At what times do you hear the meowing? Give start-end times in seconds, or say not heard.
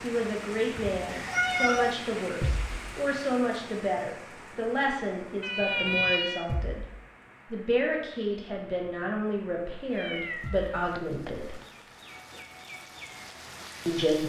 0.8-1.9, 5.4-6.5, 9.9-11.7.